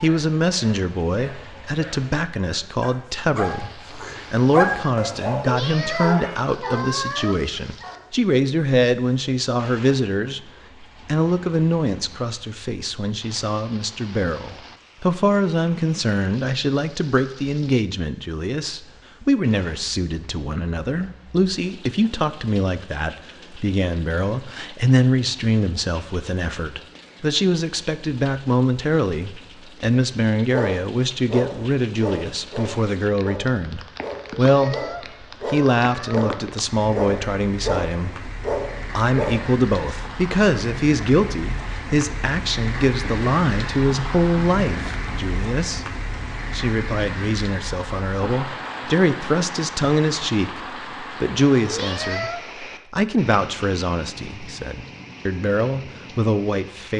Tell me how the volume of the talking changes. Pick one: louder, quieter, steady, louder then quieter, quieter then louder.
steady.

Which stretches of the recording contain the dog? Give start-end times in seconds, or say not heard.
0.0-8.2, 30.5-39.4.